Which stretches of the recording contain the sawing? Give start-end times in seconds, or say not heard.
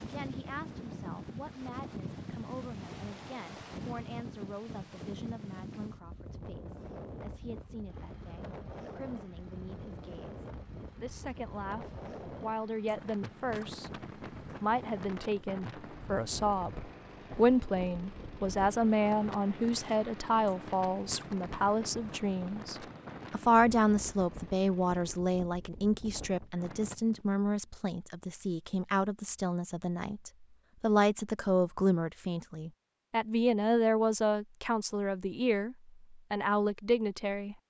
not heard.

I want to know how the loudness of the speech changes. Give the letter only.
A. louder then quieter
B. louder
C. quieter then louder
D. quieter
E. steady
B.